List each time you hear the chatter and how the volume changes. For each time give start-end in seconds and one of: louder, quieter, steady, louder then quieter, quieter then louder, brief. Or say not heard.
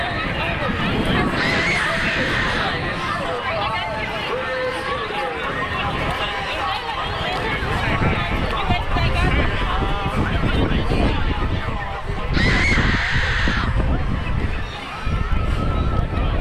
0.0-16.3 quieter.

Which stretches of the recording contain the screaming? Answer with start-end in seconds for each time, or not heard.
1.4-2.8, 12.3-13.8.